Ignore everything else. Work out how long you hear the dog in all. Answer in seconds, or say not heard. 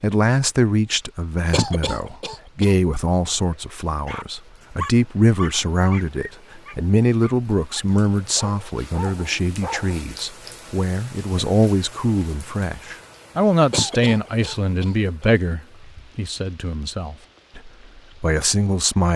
6 s.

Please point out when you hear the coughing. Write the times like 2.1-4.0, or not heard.
1.5-2.8, 13.7-15.2.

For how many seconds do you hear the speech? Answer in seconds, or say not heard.
19 s.